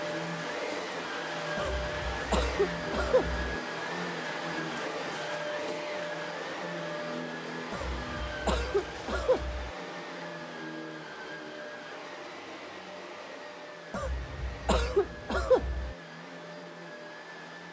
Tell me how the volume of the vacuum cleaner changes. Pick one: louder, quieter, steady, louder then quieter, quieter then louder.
quieter.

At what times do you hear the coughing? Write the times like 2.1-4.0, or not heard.
1.6-3.5, 7.7-9.7, 13.9-15.9.